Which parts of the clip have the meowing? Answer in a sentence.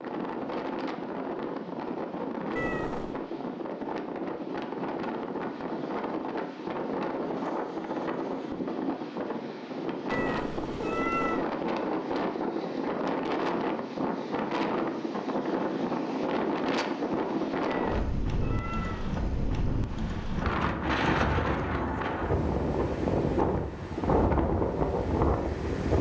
The meowing can be heard from 2.5 to 3.2 s, from 10.1 to 11.6 s and from 17.6 to 19.6 s.